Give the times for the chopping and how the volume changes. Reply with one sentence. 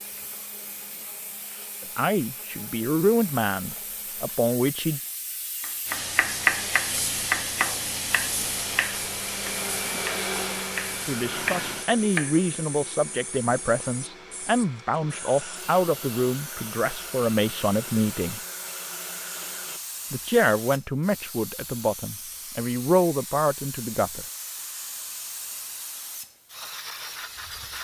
The chopping can be heard from 5.6 to 12.3 s, getting quieter then louder.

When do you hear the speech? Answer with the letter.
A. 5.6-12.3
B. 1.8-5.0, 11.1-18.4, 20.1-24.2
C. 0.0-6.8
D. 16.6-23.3
B.